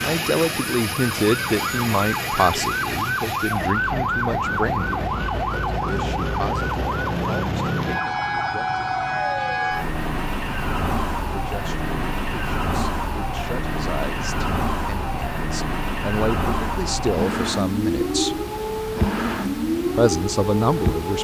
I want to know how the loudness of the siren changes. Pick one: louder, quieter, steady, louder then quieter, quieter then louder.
steady.